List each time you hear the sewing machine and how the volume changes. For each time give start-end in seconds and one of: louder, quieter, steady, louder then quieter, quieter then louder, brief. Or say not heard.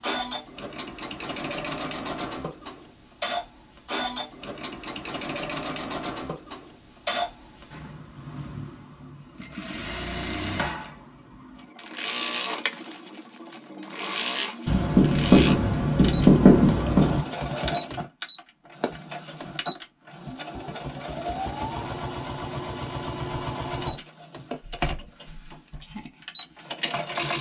0.0-27.3 steady.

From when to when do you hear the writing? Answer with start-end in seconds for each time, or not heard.
14.7-17.2.